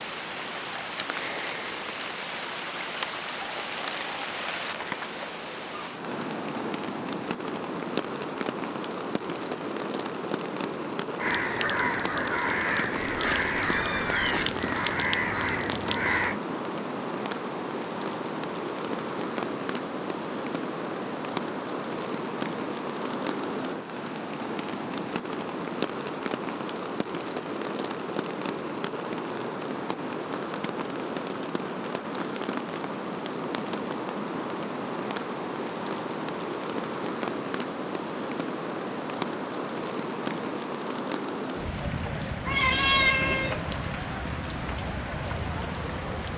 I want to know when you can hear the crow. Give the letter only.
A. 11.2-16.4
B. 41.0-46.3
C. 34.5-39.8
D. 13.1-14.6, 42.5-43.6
A.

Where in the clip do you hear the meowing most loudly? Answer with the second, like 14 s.
43 s.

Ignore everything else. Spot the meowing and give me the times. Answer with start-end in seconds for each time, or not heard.
13.1-14.6, 42.5-43.6.